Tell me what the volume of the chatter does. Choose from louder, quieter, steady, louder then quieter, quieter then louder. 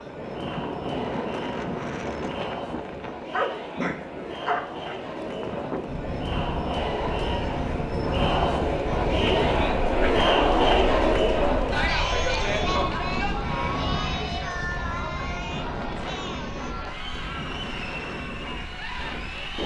louder then quieter.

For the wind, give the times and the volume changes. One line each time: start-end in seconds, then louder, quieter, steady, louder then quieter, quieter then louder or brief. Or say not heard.
0.0-19.6 steady.